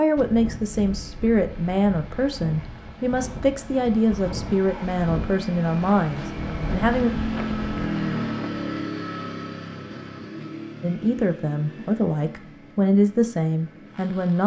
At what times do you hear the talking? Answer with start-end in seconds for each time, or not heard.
0.0-7.1, 10.8-14.4.